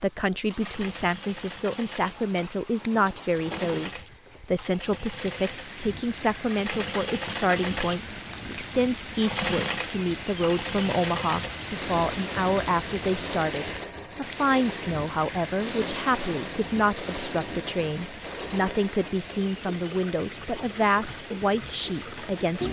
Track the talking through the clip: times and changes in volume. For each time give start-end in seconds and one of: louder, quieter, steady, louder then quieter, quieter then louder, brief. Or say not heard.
0.0-22.6 steady.